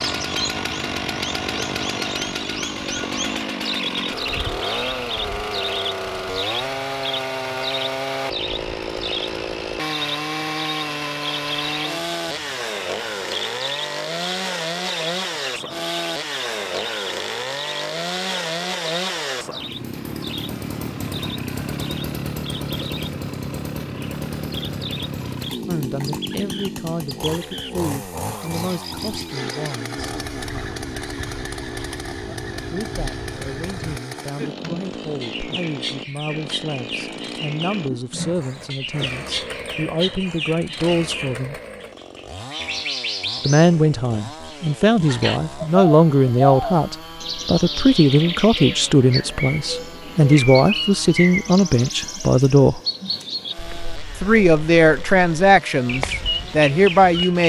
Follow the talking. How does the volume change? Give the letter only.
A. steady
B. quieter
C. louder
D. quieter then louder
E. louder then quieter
C.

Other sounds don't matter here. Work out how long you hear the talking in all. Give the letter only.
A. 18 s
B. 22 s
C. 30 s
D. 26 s
D.